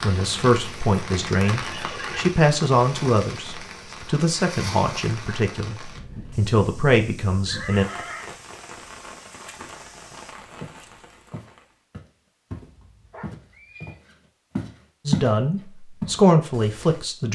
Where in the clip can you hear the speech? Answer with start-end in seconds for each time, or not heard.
0.0-7.8, 15.1-17.3.